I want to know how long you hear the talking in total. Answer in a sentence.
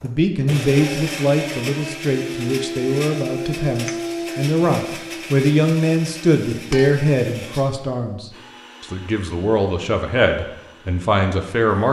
The talking can be heard for 12 seconds in total.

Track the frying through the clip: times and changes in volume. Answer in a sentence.
You can't hear the frying here.